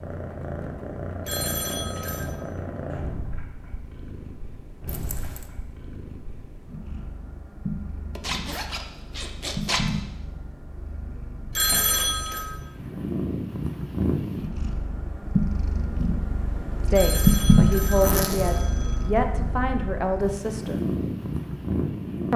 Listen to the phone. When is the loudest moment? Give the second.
12 s.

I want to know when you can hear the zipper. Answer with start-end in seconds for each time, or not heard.
4.8-5.5, 8.2-9.9, 17.9-18.6.